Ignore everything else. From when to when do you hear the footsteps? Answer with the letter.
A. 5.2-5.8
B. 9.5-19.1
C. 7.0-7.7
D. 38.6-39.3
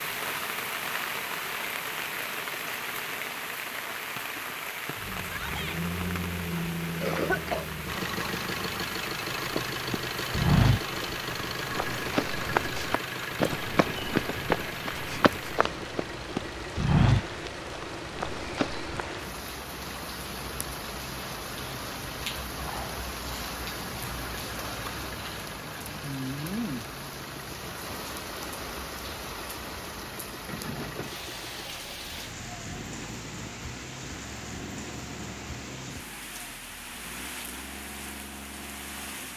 B.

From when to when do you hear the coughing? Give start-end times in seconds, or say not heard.
7.0-7.7.